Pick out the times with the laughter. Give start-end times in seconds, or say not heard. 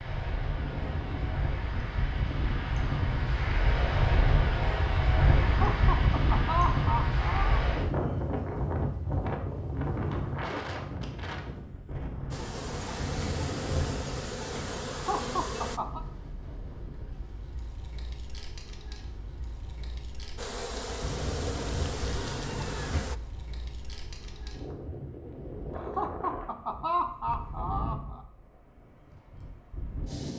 5.5-7.6, 14.9-16.0, 25.8-28.2.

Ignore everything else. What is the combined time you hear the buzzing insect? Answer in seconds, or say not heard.
6 s.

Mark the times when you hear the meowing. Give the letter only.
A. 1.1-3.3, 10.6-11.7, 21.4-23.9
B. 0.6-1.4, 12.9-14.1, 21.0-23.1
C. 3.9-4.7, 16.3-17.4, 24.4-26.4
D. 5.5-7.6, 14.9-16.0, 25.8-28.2
B.